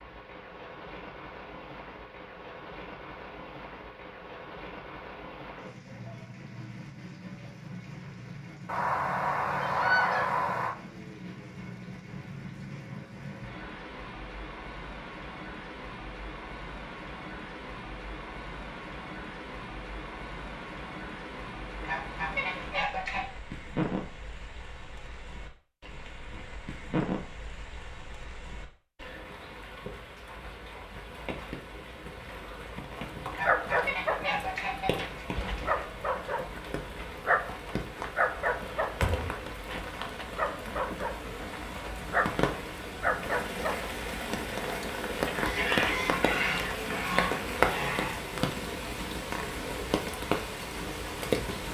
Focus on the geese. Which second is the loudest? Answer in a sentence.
The loudest moment of the geese is at 10 seconds.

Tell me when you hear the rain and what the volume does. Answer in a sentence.
You can hear the rain from 0.0 to 51.7 s, getting louder.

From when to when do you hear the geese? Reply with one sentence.
You can hear the geese from 8.7 to 10.8 s, from 21.8 to 23.2 s, from 33.3 to 35.8 s and from 45.2 to 48.1 s.